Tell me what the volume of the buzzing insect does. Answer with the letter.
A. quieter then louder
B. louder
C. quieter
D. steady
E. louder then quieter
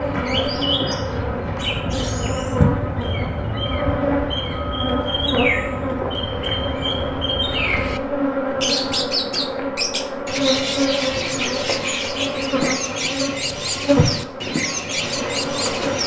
D.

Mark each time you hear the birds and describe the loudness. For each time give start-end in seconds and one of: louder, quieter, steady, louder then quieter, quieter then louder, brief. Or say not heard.
0.0-8.0 steady
8.6-16.0 steady.